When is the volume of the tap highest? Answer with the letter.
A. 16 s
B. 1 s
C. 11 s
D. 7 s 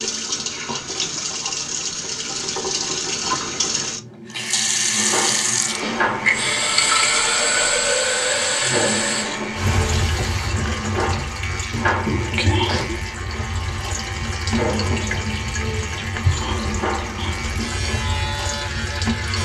D.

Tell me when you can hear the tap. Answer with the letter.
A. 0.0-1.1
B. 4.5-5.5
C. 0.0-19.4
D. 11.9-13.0
C.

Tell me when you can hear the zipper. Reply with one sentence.
You can't hear the zipper here.